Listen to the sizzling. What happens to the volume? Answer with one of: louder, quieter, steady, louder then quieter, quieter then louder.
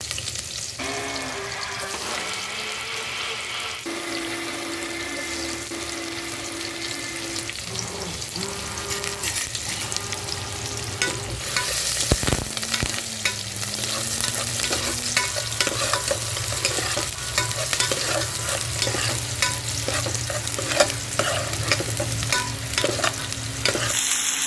louder.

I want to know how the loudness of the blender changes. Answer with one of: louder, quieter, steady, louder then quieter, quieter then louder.
quieter.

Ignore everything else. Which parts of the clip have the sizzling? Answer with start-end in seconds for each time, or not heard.
0.0-24.4.